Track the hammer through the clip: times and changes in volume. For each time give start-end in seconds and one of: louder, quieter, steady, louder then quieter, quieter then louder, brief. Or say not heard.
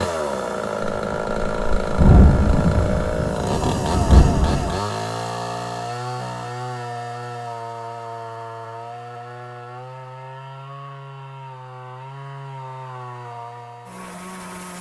not heard.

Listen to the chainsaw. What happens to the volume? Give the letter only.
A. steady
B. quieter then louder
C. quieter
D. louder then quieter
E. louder
C.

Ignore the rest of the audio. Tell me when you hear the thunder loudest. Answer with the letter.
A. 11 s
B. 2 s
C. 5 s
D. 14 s
B.